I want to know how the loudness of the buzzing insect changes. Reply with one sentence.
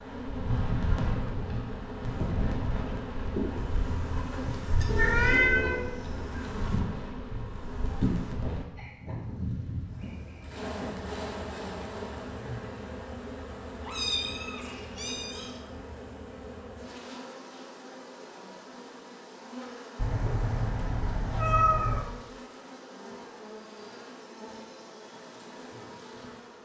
The volume of the buzzing insect goes down.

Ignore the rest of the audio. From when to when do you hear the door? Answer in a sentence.
You can't hear the door here.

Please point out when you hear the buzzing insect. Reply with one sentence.
You can hear the buzzing insect from 0.0 to 26.6 s.